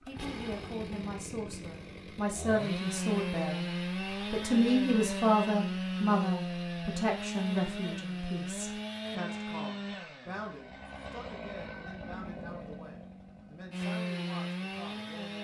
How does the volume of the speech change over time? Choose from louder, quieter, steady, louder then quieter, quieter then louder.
louder then quieter.